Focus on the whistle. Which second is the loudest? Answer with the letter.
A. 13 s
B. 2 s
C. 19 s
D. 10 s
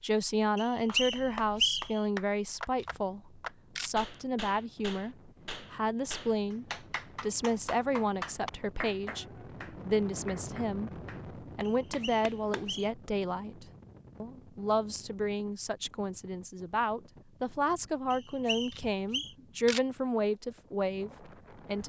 B.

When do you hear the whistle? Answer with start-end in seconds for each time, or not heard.
0.6-2.0, 11.7-12.9, 18.1-19.4.